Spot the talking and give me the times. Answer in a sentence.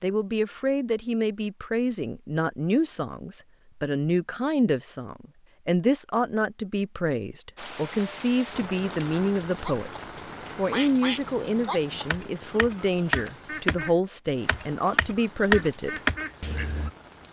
You can hear the talking from 0.0 to 9.9 s and from 10.6 to 16.0 s.